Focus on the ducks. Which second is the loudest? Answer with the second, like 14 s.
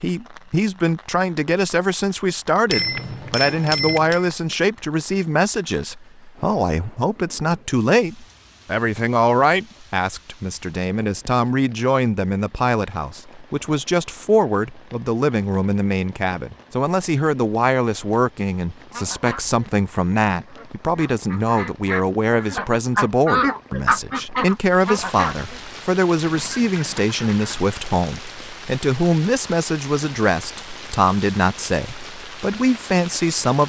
23 s.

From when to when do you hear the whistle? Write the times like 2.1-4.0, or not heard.
not heard.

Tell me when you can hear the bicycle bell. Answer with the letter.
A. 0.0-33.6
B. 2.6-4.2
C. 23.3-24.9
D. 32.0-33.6
B.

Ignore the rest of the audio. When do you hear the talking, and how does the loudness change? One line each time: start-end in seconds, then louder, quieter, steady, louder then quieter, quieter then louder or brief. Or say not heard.
0.0-33.6 steady.